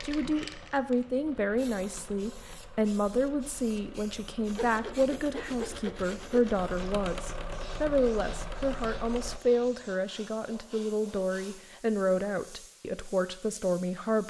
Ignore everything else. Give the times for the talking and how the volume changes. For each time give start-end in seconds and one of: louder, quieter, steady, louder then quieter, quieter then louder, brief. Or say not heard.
0.0-14.2 steady.